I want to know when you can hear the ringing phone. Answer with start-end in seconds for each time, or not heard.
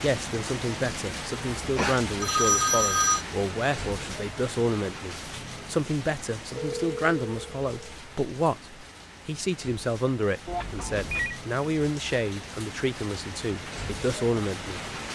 1.8-3.2, 6.5-8.0, 10.4-11.4.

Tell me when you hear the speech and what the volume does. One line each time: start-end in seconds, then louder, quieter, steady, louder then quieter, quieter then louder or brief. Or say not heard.
0.0-14.8 steady.